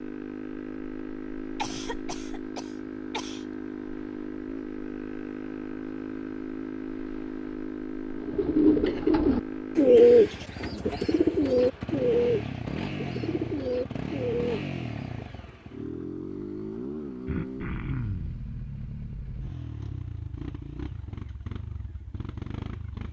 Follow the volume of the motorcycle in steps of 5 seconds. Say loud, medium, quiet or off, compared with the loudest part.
loud, loud, loud, loud, medium.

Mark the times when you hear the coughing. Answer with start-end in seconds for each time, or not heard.
1.6-3.5, 8.8-9.2, 17.2-18.4.